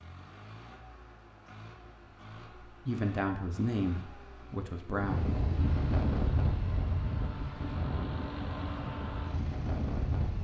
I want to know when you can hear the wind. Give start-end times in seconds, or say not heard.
4.9-10.3.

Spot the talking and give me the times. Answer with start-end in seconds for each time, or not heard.
2.6-5.2.